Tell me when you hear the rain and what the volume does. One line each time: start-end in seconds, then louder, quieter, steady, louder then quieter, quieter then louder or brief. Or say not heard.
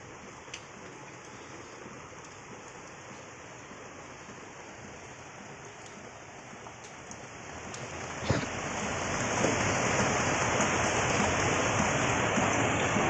0.0-13.0 louder.